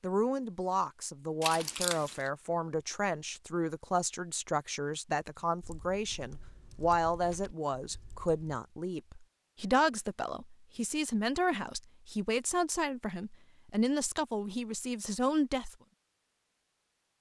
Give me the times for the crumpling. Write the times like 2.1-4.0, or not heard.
1.4-2.3.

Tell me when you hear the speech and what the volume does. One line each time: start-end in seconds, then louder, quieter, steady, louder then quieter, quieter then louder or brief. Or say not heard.
0.0-15.8 steady.